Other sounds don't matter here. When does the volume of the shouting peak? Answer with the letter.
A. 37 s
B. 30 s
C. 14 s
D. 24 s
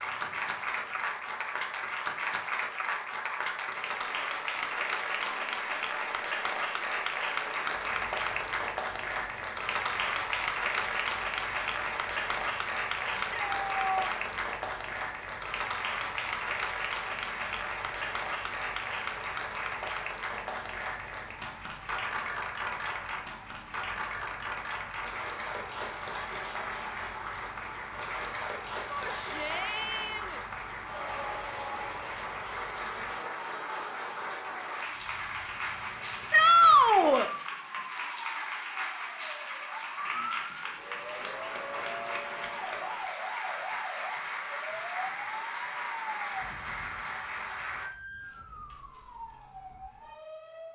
A.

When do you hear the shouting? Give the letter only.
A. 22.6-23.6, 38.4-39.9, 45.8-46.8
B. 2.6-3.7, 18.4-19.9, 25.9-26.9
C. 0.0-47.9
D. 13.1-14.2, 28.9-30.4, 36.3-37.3
D.